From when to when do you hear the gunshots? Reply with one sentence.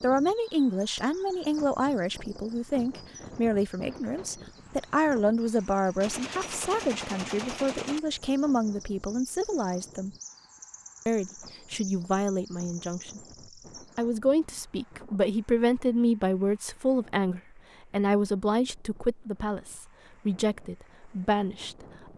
You can hear the gunshots from 6.0 to 8.0 s.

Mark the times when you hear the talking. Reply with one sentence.
You can hear the talking from 0.0 to 10.2 s, from 11.1 to 13.2 s and from 13.9 to 22.1 s.